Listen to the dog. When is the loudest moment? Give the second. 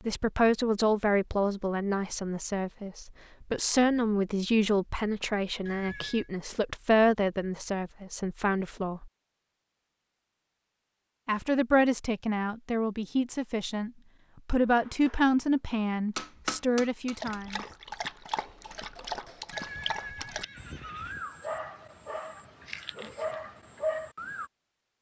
24 s.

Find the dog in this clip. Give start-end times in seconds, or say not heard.
17.1-24.5.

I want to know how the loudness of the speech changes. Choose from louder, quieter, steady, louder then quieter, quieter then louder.
steady.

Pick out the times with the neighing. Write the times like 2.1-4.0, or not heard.
5.7-6.3, 19.5-21.2.